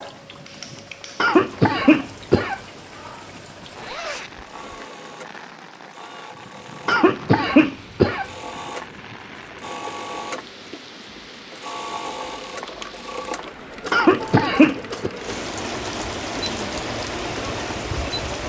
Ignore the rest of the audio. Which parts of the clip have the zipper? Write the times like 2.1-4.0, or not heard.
3.8-4.8.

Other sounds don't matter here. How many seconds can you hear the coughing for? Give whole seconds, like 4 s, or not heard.
4 s.